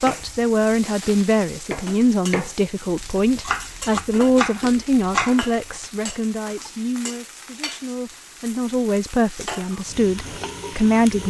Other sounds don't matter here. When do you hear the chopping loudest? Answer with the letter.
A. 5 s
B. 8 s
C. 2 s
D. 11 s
A.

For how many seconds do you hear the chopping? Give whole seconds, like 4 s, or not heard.
6 s.